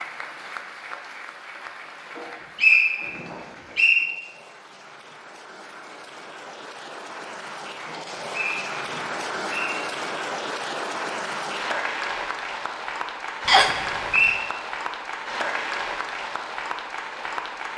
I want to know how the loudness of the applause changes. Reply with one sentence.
The volume of the applause goes up.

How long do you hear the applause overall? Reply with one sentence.
You can hear the applause for 18 seconds altogether.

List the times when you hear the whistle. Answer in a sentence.
You can hear the whistle from 2.1 to 4.0 s, from 7.9 to 9.8 s and from 13.4 to 14.4 s.